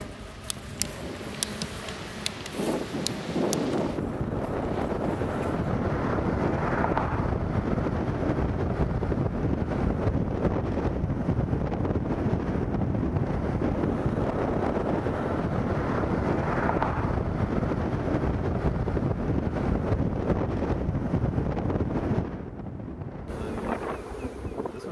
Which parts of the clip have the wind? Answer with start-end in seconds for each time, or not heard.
0.0-24.8.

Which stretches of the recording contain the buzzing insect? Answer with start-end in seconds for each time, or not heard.
0.0-5.7, 23.2-24.8.